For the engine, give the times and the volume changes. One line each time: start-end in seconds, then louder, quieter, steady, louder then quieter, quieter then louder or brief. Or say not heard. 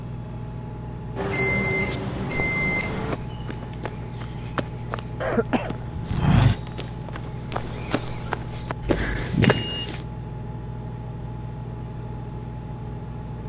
0.0-13.4 steady.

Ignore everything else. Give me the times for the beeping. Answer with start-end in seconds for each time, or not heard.
1.1-3.1, 8.8-9.9.